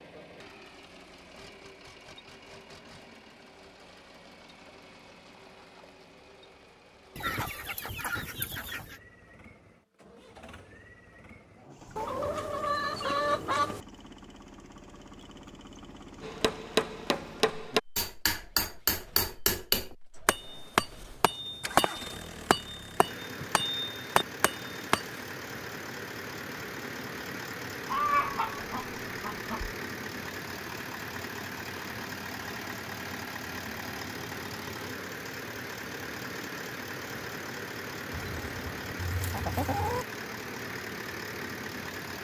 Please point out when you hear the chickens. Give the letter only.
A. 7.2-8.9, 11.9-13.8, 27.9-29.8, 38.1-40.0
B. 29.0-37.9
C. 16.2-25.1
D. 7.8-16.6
A.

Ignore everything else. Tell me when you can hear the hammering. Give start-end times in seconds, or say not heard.
16.2-25.1.